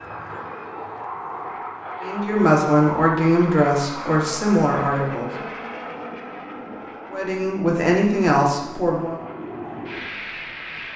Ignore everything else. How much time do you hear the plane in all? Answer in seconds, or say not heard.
11 s.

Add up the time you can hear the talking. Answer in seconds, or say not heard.
5 s.